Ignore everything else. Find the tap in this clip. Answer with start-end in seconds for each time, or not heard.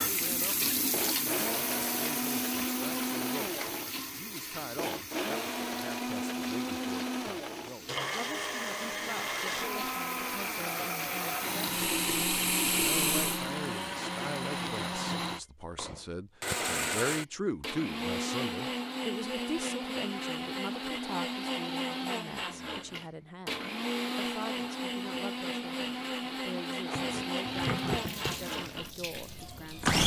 0.0-13.6, 26.7-30.0.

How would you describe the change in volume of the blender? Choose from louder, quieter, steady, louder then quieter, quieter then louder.
steady.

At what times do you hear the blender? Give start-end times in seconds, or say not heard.
0.0-30.0.